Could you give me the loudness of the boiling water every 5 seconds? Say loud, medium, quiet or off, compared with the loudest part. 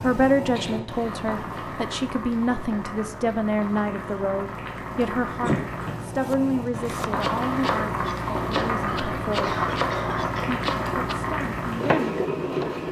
medium, loud, loud.